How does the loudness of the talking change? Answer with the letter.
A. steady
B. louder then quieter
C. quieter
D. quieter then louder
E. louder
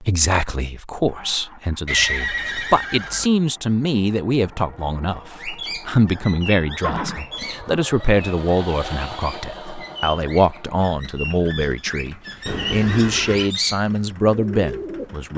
A.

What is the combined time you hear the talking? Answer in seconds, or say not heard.
15 s.